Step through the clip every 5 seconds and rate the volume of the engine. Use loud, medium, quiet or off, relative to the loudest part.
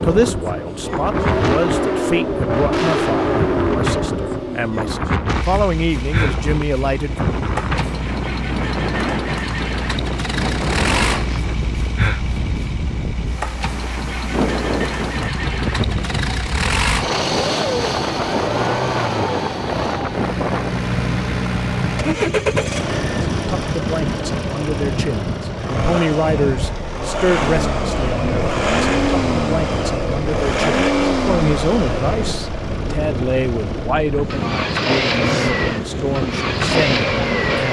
loud, medium, medium, loud, loud, loud, loud, loud.